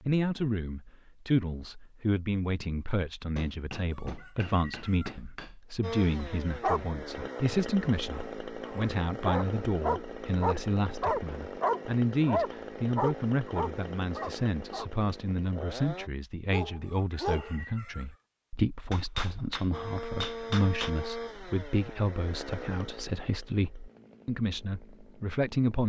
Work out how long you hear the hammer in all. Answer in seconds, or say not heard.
4 s.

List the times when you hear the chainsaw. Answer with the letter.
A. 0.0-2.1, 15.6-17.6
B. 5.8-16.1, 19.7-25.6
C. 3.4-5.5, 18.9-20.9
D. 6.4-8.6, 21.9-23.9
B.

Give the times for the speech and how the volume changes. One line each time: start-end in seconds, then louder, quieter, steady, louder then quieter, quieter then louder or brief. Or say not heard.
0.0-25.8 steady.